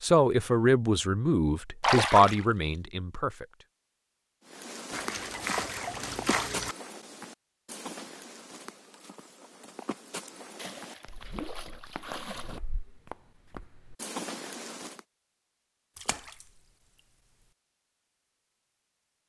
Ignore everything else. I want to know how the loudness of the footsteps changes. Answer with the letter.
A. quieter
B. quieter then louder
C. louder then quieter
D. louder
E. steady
B.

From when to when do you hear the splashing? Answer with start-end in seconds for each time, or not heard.
1.8-2.8, 4.9-6.8, 10.6-12.6, 15.9-16.4.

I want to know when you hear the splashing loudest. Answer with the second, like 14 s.
2 s.